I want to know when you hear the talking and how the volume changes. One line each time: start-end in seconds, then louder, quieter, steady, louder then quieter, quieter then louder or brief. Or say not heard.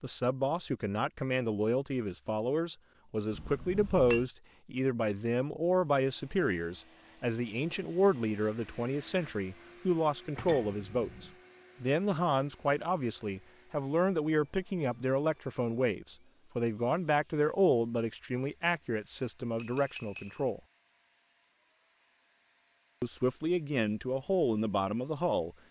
0.0-20.6 steady
23.0-25.6 brief.